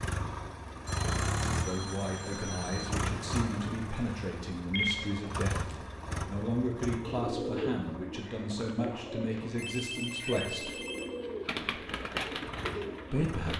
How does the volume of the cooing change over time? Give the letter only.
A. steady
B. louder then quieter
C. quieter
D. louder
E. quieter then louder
E.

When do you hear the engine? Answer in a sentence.
The engine can be heard from 0.0 to 13.5 s.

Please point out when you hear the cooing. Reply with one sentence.
The cooing can be heard from 7.0 to 13.5 s.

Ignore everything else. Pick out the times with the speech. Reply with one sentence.
The speech can be heard from 1.6 to 10.8 s and from 13.1 to 13.5 s.